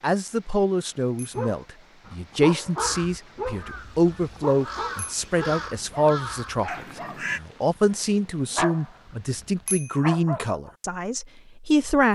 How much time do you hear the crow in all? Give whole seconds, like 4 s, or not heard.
5 s.